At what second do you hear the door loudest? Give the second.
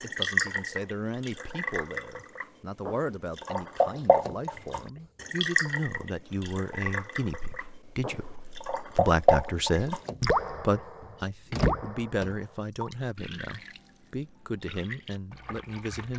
12 s.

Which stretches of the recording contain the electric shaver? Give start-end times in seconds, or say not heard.
not heard.